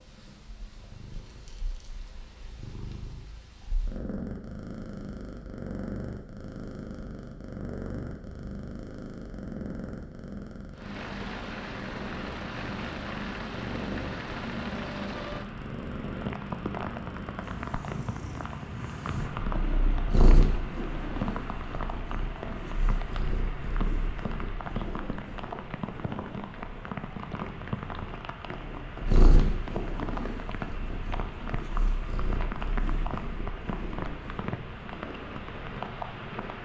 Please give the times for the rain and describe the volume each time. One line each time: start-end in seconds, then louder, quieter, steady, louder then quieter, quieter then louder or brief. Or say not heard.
10.8-36.6 steady.